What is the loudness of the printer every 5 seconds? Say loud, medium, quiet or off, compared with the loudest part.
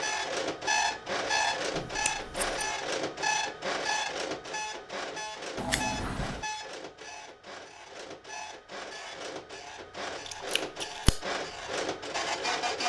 loud, medium, loud.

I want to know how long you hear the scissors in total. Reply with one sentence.
The scissors can be heard for 3 seconds in total.